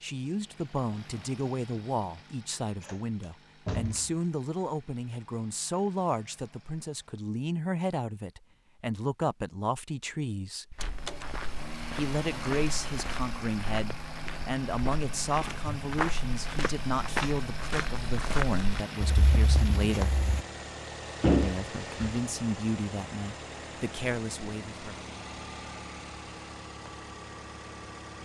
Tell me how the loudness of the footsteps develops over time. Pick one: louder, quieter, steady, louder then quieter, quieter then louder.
louder.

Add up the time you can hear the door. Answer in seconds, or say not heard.
3 s.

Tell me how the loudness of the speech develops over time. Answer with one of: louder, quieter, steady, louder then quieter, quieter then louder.
steady.